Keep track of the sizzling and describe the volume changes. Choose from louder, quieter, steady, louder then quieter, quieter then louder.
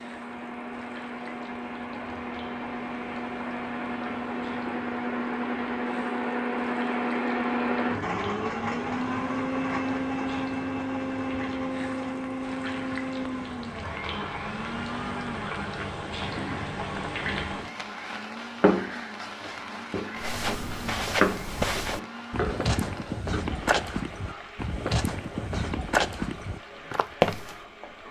louder then quieter.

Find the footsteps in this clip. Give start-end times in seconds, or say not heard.
20.1-27.6.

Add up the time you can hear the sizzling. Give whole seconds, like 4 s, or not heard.
28 s.